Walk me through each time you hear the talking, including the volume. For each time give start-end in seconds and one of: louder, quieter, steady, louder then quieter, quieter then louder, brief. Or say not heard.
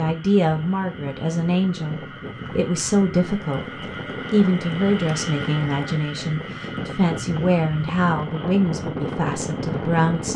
0.0-10.3 steady.